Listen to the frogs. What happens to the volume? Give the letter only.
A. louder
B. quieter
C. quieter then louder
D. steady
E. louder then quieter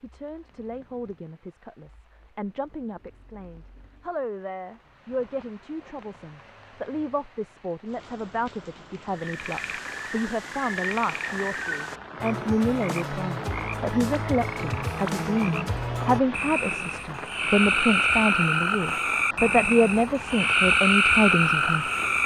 A.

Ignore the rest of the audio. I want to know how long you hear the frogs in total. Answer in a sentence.
You can hear the frogs for 13 seconds altogether.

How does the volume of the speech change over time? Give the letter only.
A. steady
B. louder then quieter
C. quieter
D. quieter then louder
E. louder
E.